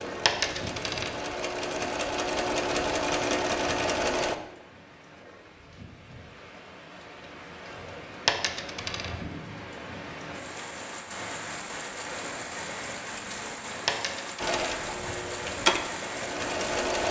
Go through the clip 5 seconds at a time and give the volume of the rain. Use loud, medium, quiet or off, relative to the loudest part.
medium, medium, loud, loud.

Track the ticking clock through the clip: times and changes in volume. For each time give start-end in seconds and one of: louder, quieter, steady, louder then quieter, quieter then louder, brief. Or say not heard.
not heard.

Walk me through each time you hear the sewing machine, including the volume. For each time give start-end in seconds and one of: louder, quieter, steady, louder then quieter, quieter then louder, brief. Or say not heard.
0.0-4.3 louder
14.3-17.0 brief.